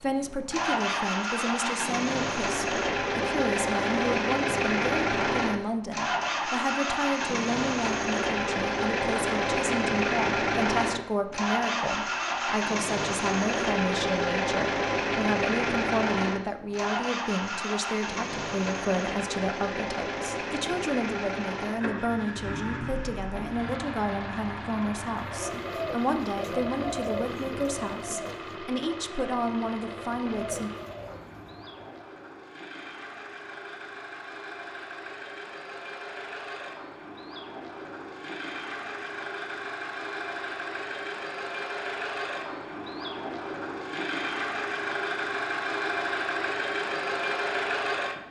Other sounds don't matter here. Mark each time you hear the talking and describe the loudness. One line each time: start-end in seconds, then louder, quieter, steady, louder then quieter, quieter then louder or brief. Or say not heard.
0.0-30.7 steady.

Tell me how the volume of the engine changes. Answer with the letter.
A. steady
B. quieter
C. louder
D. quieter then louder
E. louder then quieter
D.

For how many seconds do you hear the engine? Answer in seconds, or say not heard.
48 s.